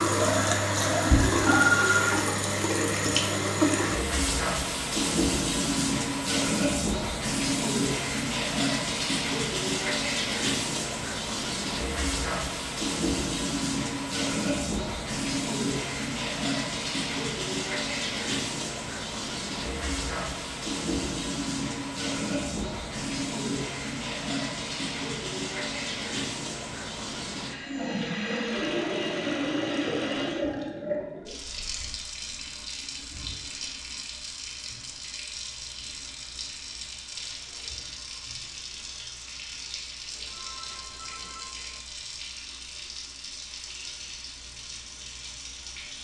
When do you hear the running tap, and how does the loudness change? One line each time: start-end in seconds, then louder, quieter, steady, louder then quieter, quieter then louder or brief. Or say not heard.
0.0-45.9 quieter.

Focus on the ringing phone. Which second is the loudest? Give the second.
2 s.